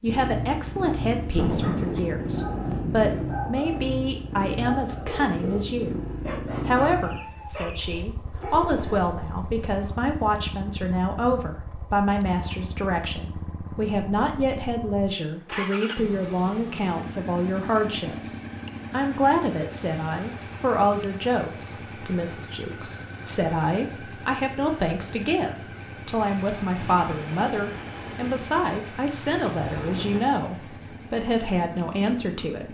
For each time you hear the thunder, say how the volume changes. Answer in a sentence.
You can hear the thunder briefly from 1.4 to 3.4 s; and from 26.2 to 30.2 s, getting quieter then louder.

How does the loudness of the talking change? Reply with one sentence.
The volume of the talking stays about the same.